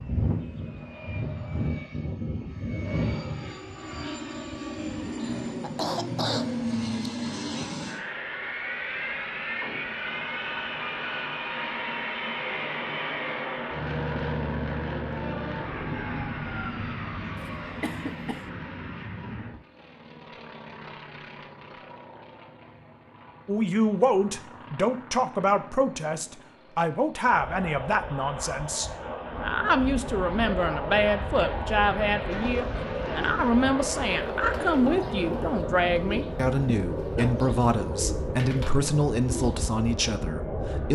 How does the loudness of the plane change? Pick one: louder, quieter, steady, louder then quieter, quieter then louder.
quieter then louder.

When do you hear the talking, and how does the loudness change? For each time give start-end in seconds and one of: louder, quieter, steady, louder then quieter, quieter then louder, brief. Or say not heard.
23.4-40.9 steady.